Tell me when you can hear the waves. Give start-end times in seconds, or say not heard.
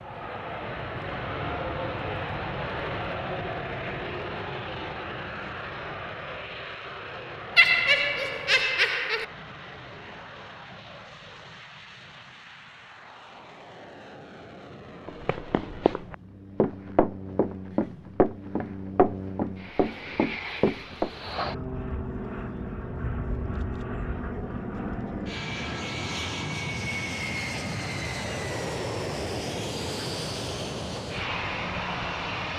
not heard.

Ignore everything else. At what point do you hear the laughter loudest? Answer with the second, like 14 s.
8 s.